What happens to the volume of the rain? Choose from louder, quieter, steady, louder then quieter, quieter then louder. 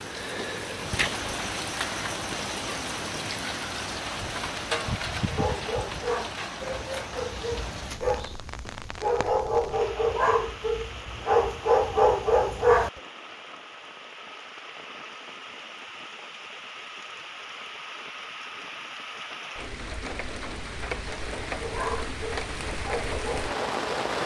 quieter then louder.